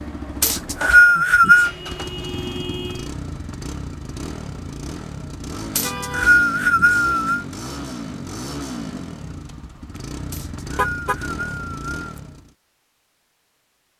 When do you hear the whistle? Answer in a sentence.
You can hear the whistle from 0.4 to 1.7 s, from 5.8 to 7.5 s and from 10.3 to 12.2 s.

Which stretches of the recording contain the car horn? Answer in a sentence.
You can hear the car horn from 1.4 to 3.1 s, from 5.8 to 6.3 s and from 10.8 to 11.2 s.